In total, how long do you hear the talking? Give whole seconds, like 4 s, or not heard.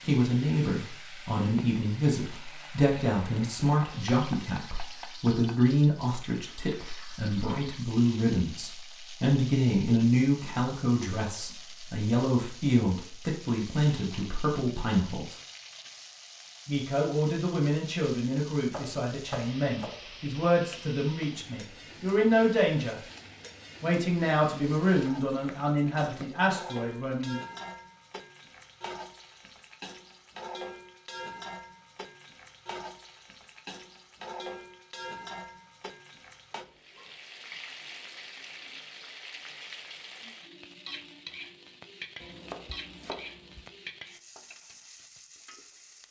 25 s.